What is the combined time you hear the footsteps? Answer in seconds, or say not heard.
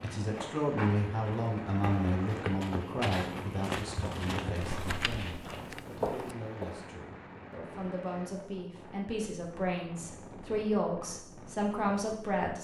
7 s.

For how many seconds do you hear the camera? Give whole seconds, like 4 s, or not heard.
2 s.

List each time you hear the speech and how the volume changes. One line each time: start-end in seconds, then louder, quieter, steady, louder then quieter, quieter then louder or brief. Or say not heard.
0.0-12.5 quieter then louder.